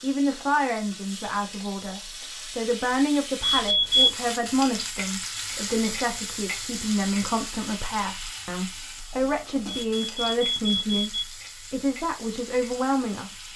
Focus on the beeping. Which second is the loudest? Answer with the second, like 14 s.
4 s.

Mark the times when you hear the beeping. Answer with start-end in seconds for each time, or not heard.
3.4-4.1, 9.8-11.2.